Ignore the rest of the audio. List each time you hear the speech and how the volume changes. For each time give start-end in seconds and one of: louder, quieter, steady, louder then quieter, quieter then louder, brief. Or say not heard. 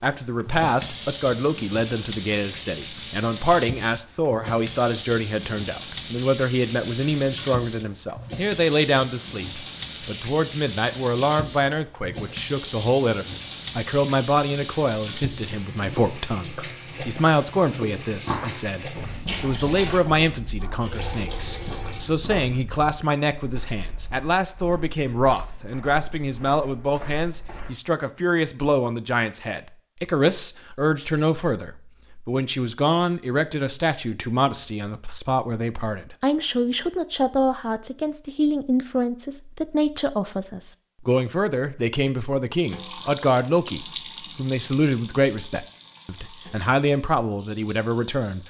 0.0-48.4 steady.